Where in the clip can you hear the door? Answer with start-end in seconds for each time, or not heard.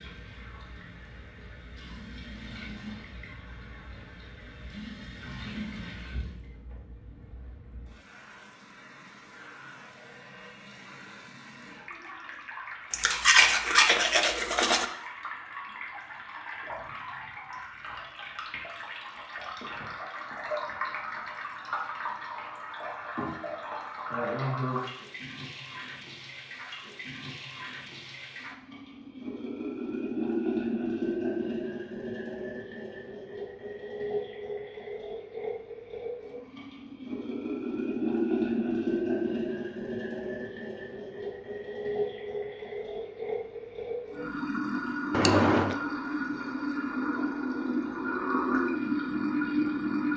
not heard.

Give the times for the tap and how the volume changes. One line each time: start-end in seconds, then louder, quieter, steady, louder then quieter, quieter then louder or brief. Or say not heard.
0.0-50.1 louder.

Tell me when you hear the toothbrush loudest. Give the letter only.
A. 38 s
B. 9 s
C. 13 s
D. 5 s
C.